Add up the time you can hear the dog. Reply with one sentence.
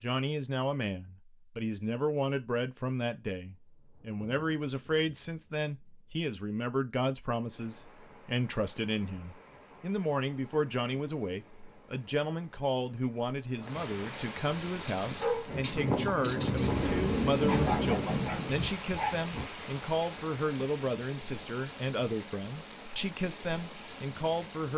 You can hear the dog for 5 seconds altogether.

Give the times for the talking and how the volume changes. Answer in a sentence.
You can hear the talking from 0.0 to 24.7 s, at a steady volume.